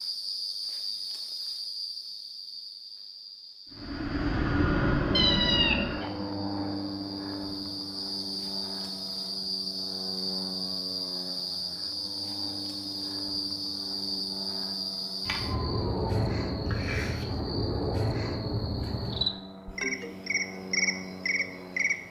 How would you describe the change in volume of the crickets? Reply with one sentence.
The loudness of the crickets goes up.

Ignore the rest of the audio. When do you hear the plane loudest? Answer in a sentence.
The volume of the plane peaks at 5 seconds.